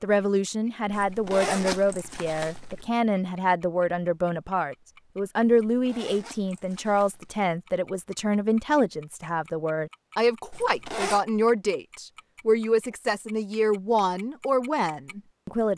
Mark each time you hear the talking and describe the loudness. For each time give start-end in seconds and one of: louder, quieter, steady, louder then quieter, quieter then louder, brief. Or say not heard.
0.0-15.7 steady.